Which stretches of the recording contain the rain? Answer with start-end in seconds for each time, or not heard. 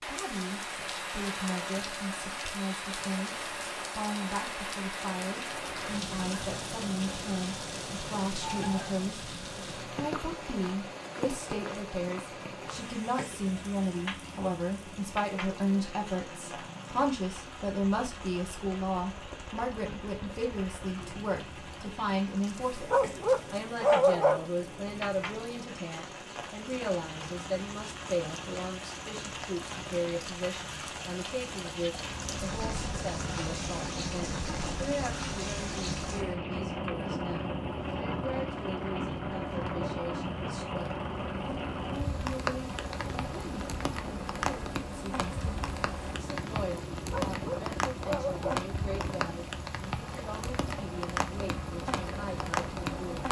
0.0-53.2.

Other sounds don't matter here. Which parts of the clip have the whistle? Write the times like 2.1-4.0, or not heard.
not heard.